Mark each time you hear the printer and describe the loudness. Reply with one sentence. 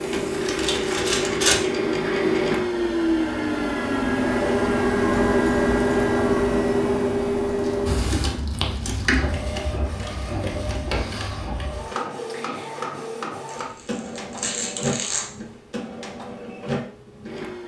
The printer can be heard from 0.0 to 17.6 s, getting quieter.